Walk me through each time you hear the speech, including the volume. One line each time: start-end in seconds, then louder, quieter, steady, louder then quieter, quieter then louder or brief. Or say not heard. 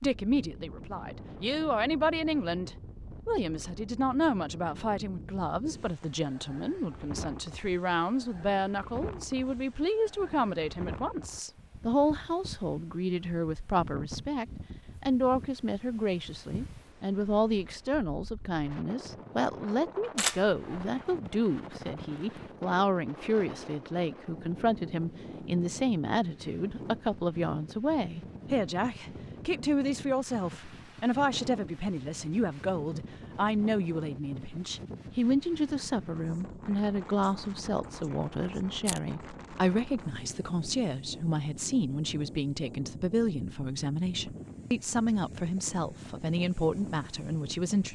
0.0-47.8 steady.